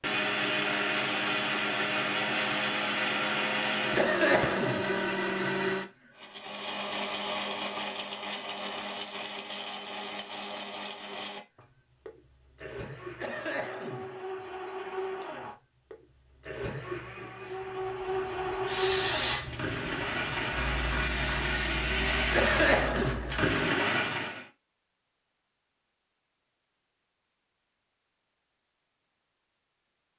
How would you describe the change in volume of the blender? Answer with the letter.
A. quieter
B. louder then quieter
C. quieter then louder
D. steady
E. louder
C.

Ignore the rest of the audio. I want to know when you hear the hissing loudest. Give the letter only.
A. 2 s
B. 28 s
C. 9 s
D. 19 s
D.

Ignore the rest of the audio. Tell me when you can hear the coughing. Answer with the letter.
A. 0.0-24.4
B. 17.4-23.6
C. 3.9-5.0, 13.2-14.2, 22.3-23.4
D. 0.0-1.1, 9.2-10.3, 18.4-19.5
C.